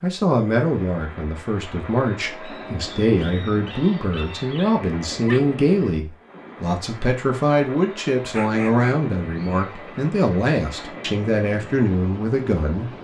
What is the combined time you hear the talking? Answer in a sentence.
The talking can be heard for 13 seconds in total.